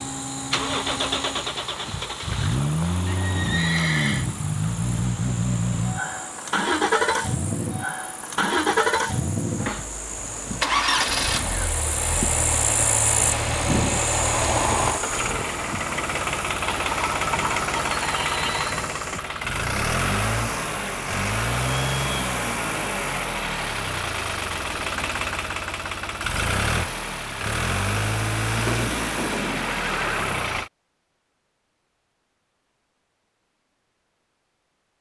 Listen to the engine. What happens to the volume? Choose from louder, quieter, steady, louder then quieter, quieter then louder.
steady.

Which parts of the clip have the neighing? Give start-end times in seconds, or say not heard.
3.0-4.2, 16.6-18.9, 28.5-30.5.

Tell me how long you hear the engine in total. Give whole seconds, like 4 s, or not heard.
31 s.